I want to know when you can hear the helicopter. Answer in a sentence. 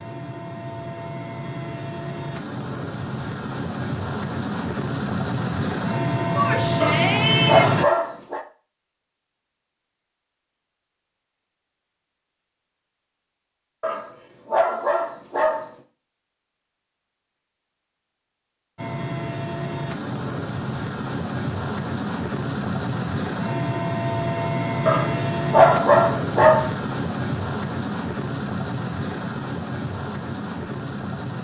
You can hear the helicopter from 0.0 to 7.8 s and from 18.8 to 31.3 s.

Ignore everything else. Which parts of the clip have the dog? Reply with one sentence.
The dog can be heard from 6.8 to 8.4 s, from 13.8 to 15.7 s and from 24.9 to 26.7 s.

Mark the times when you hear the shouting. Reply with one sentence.
You can hear the shouting from 6.3 to 7.8 s.